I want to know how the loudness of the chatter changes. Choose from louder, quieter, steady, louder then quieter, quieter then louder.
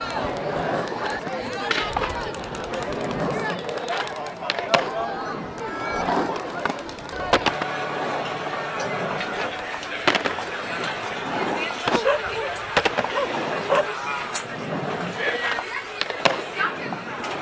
steady.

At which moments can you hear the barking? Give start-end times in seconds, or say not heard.
11.9-13.9.